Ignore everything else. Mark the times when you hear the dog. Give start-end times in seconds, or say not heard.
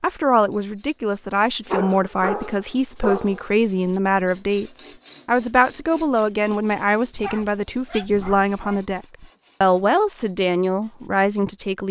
1.7-3.5, 7.1-8.8.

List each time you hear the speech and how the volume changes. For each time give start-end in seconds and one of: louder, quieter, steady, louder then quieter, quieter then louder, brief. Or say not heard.
0.0-11.8 steady.